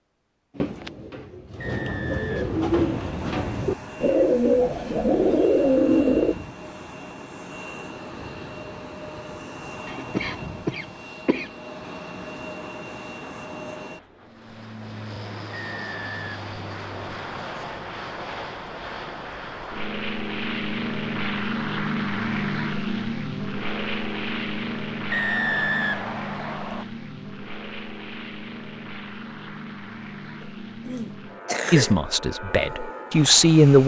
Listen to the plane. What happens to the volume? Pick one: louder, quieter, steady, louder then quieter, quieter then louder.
louder then quieter.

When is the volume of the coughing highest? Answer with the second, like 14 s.
32 s.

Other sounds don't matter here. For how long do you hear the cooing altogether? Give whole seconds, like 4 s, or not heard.
6 s.